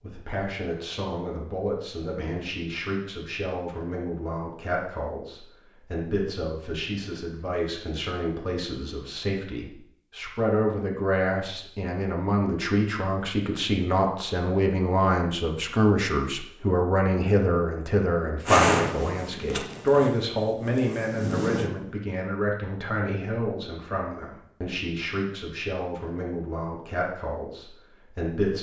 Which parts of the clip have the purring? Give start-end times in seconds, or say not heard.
18.4-21.7.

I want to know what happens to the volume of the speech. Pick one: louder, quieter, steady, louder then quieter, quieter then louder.
louder then quieter.